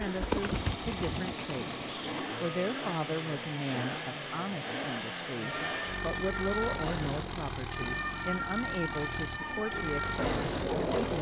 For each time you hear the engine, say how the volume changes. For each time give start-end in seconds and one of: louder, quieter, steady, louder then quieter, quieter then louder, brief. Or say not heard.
0.0-11.1 steady.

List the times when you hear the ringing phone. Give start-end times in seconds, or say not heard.
not heard.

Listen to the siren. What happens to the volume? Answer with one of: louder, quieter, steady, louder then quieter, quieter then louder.
steady.